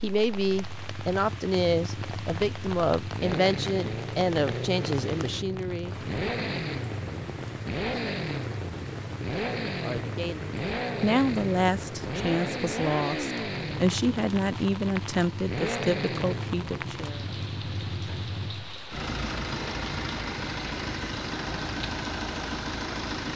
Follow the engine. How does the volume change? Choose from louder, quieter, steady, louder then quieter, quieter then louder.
steady.